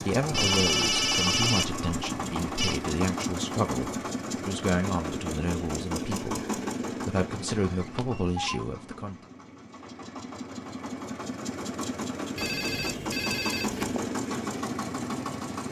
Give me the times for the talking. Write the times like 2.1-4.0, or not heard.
0.0-9.2.